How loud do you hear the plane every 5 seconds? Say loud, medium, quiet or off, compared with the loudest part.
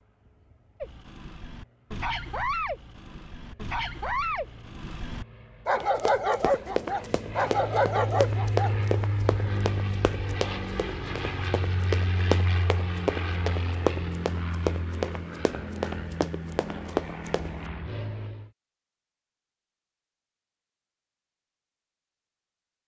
quiet, loud, loud, loud, off.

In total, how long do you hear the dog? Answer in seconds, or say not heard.
8 s.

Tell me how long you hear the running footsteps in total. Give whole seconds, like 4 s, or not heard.
12 s.